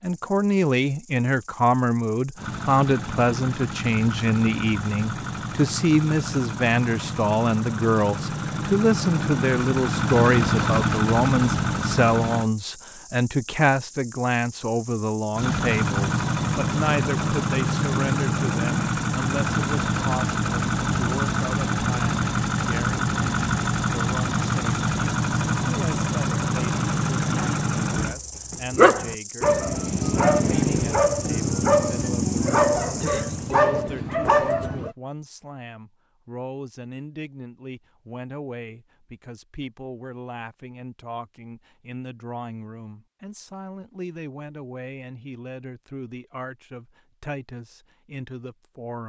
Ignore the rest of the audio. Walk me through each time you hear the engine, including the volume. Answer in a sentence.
You can hear the engine from 2.4 to 12.5 s, getting louder; and from 15.3 to 28.1 s, at a steady volume.